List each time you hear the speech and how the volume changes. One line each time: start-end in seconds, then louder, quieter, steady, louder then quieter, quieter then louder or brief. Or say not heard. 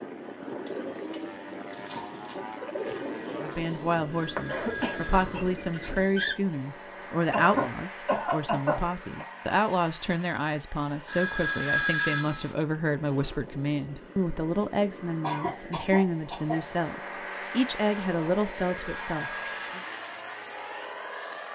3.4-19.8 steady.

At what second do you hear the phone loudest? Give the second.
12 s.